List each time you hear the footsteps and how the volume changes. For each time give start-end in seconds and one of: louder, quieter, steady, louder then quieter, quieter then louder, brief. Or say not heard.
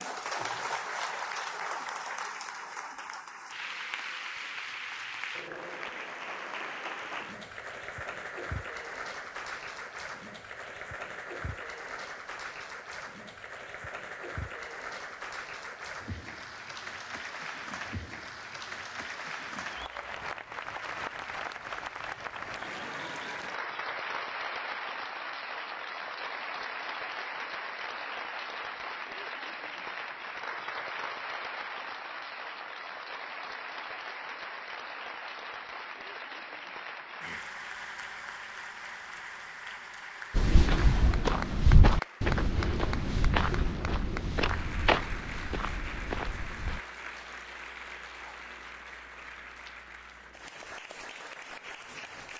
40.4-46.8 quieter.